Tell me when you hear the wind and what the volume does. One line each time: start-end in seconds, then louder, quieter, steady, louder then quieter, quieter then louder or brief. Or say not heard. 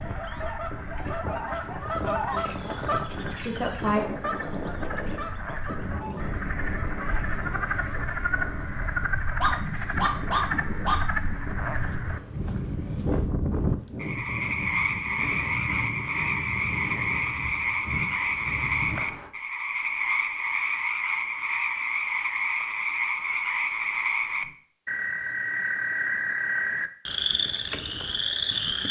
0.0-19.3 steady.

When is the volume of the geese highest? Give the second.
2 s.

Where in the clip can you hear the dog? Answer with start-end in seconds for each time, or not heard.
9.4-11.0.